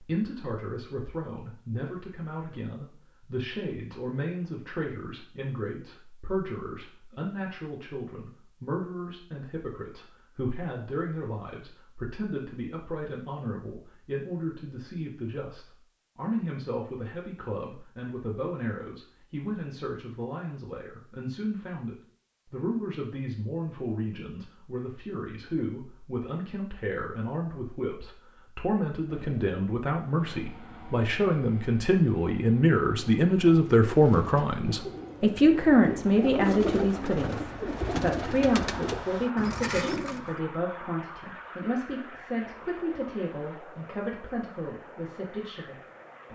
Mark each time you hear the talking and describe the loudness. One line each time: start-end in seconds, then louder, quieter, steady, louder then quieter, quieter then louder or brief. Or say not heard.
0.0-46.3 louder then quieter.